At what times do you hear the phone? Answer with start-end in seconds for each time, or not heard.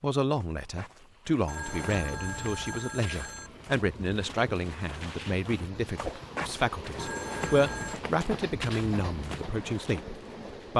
1.4-3.5, 7.0-8.0.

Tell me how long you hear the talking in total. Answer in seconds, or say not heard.
11 s.